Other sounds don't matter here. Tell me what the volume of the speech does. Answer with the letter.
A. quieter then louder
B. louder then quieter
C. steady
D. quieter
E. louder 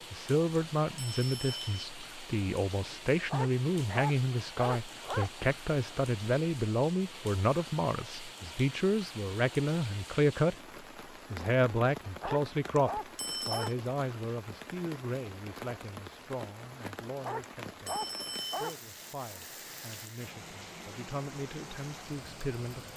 D.